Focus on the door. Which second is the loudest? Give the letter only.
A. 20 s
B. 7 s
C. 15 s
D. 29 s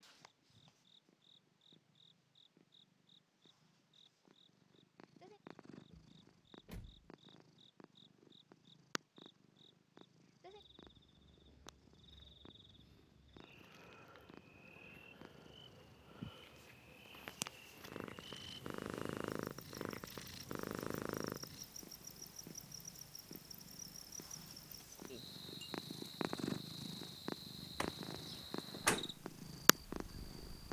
D.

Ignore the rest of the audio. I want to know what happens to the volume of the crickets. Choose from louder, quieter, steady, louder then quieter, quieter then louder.
louder.